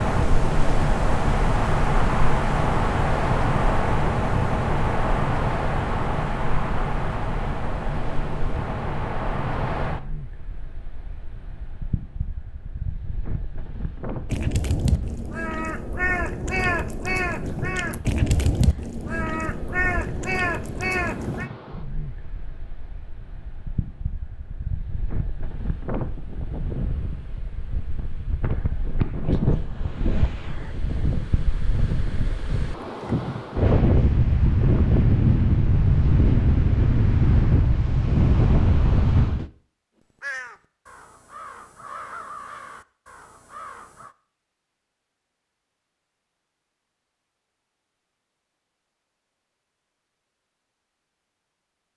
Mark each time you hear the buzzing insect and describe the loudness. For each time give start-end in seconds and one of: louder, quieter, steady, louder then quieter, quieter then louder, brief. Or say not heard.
not heard.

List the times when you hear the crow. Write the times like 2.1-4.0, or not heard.
14.2-21.5, 40.2-44.1.